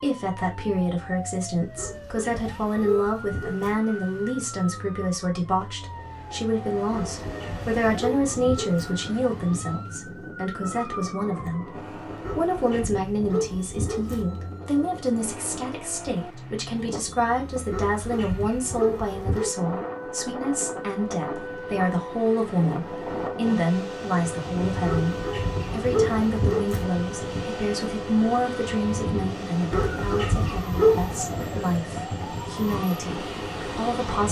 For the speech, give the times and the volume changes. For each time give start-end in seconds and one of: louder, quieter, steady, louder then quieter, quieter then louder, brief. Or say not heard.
0.0-34.2 steady.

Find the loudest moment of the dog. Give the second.
31 s.